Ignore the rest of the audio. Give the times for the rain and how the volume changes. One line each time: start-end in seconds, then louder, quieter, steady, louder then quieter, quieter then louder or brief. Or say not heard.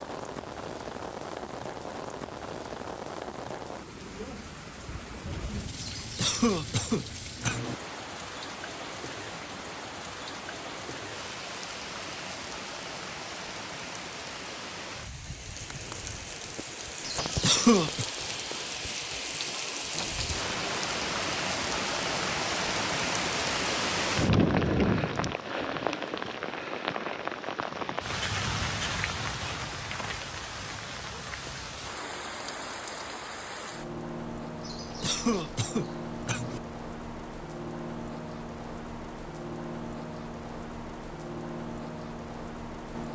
0.0-43.1 louder then quieter.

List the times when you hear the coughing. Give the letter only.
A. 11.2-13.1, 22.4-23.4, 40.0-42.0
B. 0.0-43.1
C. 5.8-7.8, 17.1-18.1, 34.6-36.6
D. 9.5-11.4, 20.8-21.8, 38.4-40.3
C.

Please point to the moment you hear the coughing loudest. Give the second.
18 s.